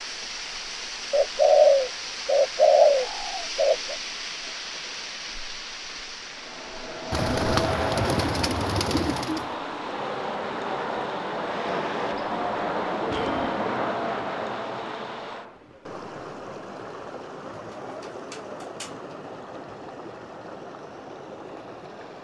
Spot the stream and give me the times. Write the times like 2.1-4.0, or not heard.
0.0-22.1.